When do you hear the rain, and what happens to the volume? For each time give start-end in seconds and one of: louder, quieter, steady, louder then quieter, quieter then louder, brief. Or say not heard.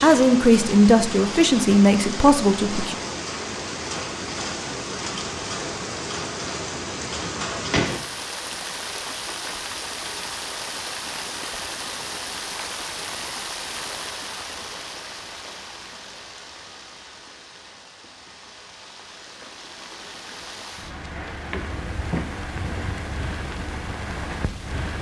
0.0-24.9 quieter then louder.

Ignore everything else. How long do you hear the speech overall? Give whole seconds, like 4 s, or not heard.
3 s.